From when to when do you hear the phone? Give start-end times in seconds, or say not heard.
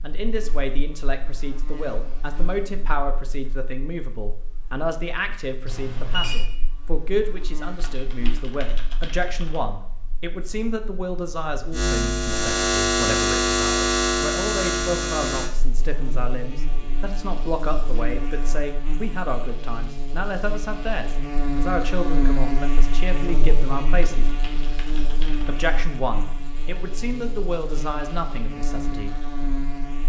5.7-6.4.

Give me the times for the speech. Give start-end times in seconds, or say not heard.
0.0-24.2, 25.4-29.2.